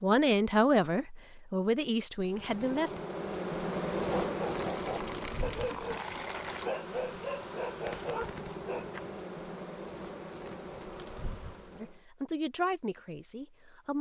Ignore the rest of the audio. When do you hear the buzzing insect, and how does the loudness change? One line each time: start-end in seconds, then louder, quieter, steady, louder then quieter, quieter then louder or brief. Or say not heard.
2.2-12.0 quieter.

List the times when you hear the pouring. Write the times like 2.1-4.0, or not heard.
4.5-6.7.